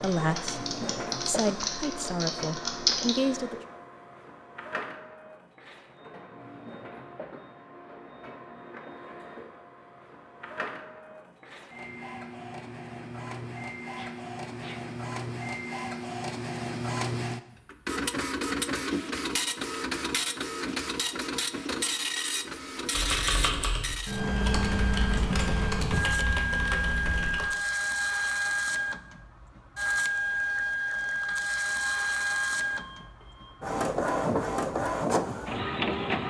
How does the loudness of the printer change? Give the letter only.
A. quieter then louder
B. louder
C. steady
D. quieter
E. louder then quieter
B.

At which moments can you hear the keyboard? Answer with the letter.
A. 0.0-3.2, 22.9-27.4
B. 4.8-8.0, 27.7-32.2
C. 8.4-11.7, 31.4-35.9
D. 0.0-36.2
A.